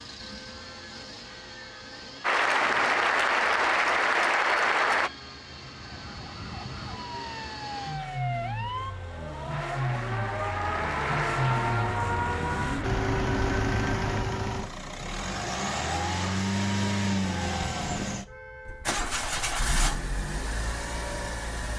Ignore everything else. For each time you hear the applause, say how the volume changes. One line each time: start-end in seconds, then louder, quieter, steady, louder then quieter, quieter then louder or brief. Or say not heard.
2.2-5.1 brief
9.4-14.2 louder then quieter.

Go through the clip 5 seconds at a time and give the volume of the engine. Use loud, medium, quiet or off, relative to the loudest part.
quiet, medium, loud, loud, medium.